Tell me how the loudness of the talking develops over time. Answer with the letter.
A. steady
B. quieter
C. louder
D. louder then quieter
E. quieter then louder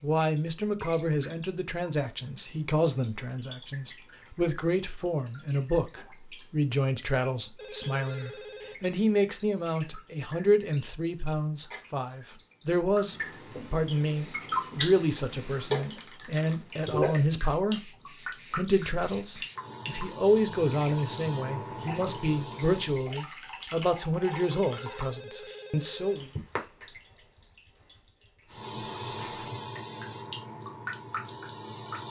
A.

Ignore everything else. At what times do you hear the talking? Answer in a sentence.
The talking can be heard from 0.0 to 26.3 s.